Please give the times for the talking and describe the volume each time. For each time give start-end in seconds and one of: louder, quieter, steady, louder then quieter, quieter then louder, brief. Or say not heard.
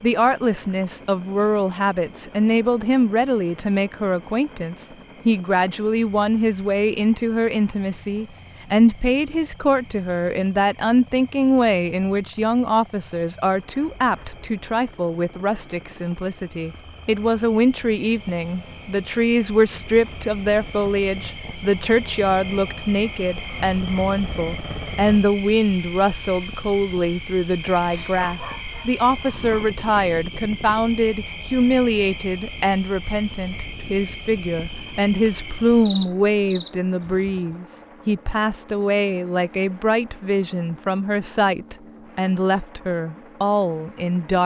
0.0-44.4 steady.